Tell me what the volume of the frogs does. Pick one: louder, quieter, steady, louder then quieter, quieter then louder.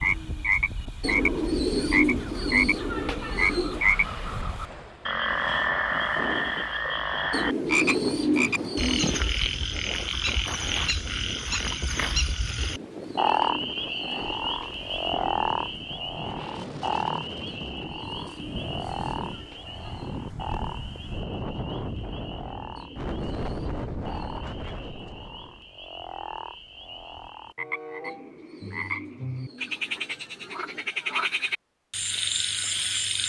quieter then louder.